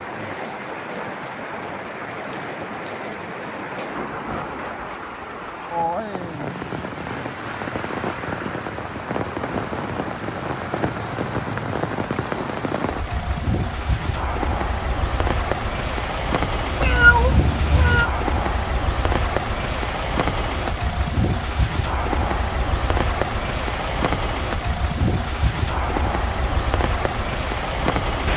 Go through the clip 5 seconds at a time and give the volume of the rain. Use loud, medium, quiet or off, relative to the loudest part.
medium, loud, loud, loud, loud, loud.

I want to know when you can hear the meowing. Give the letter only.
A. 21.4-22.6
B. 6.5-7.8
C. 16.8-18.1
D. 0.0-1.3
C.